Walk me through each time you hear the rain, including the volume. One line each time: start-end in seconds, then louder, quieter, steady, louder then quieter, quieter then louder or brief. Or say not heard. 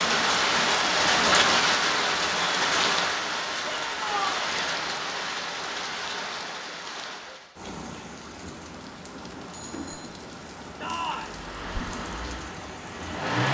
0.0-13.3 quieter.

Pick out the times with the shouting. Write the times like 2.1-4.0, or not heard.
3.6-4.5, 10.8-11.3.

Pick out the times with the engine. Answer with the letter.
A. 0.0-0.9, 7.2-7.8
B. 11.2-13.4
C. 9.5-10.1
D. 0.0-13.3
B.